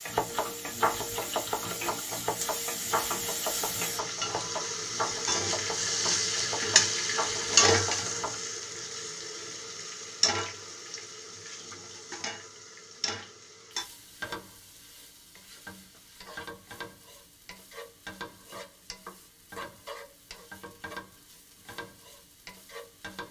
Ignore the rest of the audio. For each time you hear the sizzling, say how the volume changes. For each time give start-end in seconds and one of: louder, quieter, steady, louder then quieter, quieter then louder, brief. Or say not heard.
0.0-23.2 louder then quieter.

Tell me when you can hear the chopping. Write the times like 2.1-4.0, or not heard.
0.1-8.3.